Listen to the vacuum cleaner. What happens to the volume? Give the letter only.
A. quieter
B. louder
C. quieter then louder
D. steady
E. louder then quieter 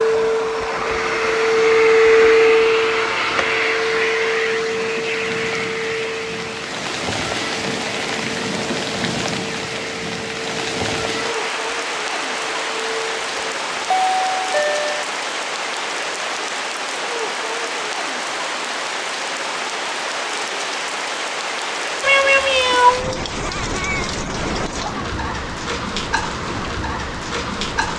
A.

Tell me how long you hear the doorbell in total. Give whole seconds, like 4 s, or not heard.
2 s.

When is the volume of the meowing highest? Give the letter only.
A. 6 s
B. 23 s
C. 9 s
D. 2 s
B.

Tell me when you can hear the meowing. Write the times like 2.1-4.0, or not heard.
22.0-24.1.